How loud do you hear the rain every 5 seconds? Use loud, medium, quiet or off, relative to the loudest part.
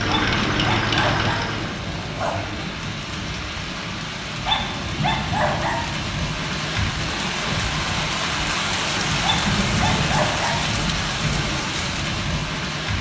medium, loud, loud.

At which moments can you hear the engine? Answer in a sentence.
You can hear the engine from 0.0 to 1.8 s.